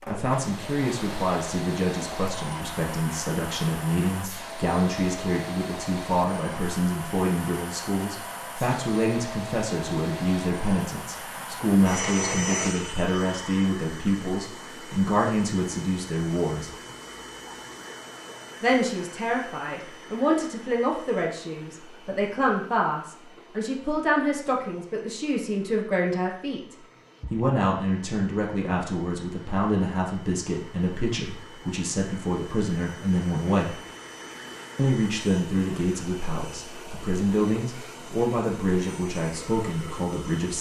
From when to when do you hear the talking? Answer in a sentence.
You can hear the talking from 0.1 to 16.8 s, from 18.6 to 33.8 s and from 34.8 to 40.5 s.